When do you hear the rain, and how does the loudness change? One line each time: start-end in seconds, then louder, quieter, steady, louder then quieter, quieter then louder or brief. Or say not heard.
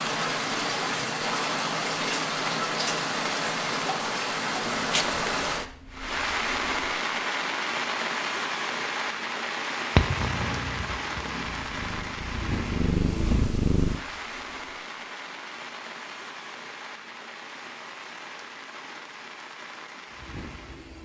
0.0-21.0 quieter.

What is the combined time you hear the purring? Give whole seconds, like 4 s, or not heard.
4 s.